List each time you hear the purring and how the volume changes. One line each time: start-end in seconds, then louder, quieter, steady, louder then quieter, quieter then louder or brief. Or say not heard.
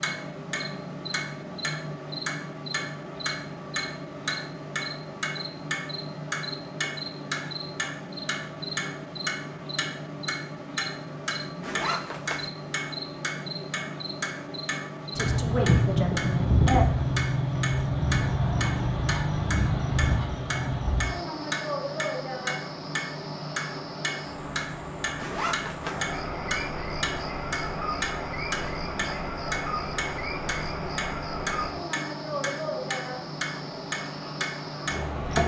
not heard.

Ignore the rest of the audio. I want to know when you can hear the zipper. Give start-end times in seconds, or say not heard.
11.6-12.5, 25.1-26.1.